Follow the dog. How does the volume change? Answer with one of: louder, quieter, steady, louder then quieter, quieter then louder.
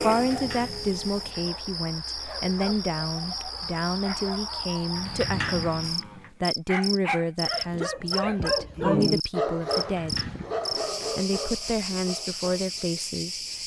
louder then quieter.